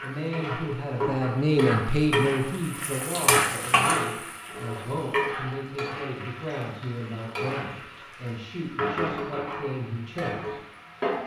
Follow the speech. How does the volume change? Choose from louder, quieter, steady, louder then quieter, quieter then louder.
quieter.